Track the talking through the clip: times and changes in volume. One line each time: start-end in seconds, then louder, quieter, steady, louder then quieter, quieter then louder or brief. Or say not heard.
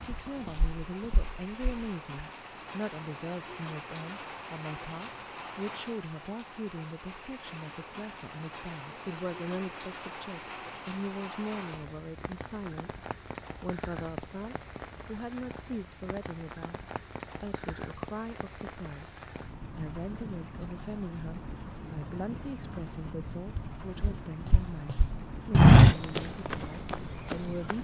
0.1-27.7 steady.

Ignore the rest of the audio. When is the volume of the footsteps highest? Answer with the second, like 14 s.
26 s.